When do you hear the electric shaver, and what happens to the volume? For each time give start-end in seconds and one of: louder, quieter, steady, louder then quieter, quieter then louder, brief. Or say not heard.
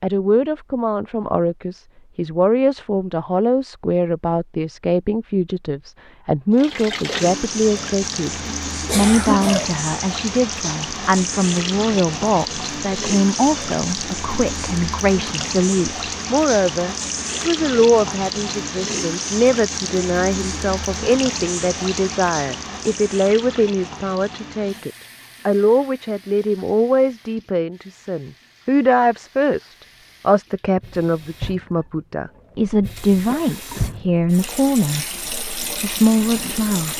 not heard.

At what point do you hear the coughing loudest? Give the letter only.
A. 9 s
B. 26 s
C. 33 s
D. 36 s
A.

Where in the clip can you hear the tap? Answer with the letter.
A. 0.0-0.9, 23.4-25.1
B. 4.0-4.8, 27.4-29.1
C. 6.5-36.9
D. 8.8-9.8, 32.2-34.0
C.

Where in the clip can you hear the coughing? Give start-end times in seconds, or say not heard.
8.8-9.8, 32.2-34.0.